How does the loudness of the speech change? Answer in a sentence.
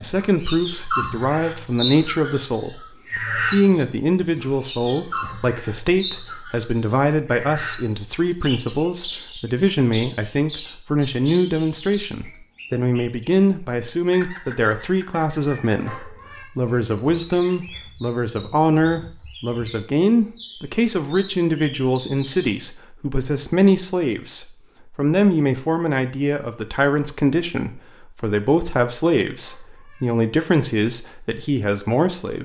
The loudness of the speech stays about the same.